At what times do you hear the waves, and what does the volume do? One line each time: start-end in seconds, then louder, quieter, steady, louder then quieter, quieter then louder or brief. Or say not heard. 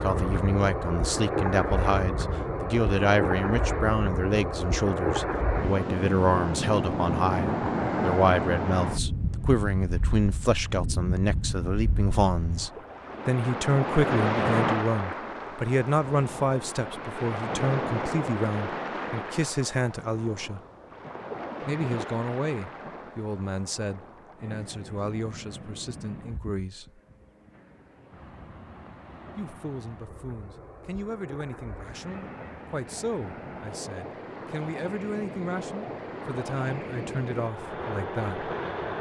0.0-38.9 quieter then louder.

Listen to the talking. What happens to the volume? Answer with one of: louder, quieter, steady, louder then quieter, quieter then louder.
quieter.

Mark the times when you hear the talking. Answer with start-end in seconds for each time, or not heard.
0.0-20.6, 21.6-27.0, 29.4-38.5.